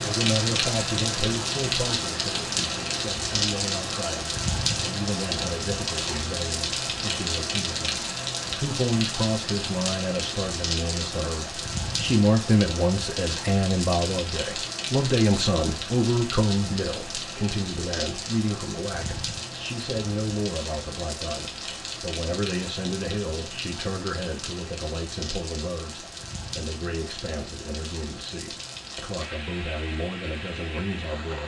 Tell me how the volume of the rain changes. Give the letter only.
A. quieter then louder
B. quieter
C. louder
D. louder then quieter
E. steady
B.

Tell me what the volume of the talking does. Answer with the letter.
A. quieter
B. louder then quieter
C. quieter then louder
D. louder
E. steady
B.